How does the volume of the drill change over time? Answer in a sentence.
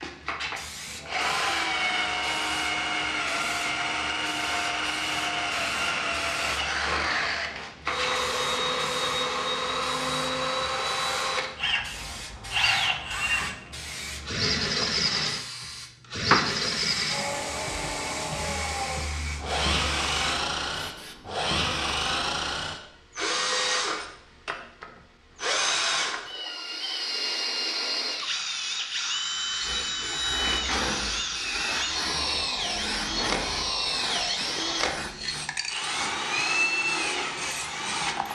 The loudness of the drill stays about the same.